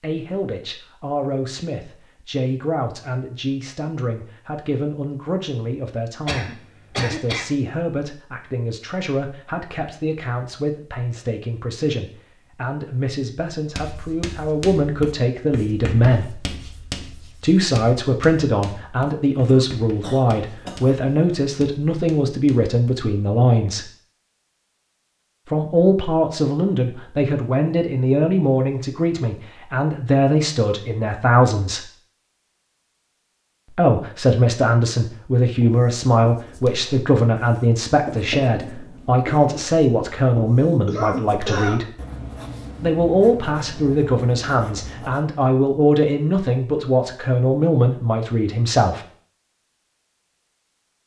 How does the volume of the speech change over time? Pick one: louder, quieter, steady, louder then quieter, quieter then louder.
louder.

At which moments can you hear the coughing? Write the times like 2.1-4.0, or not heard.
6.2-7.5, 19.4-21.0, 40.9-41.8.